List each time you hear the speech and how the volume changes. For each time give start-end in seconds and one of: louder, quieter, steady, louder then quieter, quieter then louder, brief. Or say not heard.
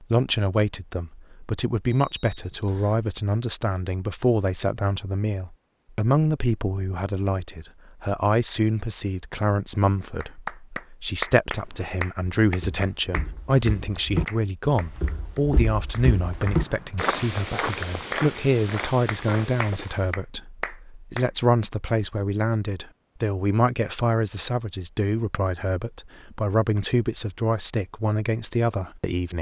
0.0-29.3 steady.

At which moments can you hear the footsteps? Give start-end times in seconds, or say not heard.
11.6-20.1.